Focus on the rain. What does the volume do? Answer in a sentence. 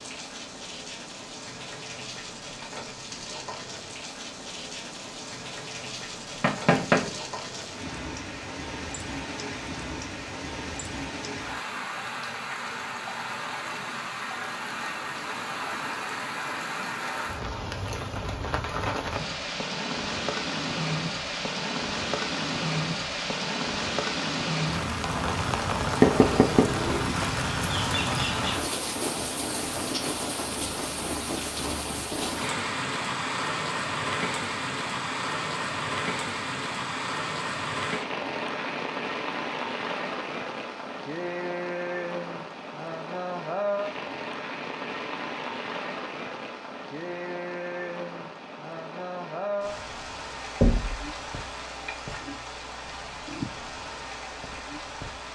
The volume of the rain goes up, then down.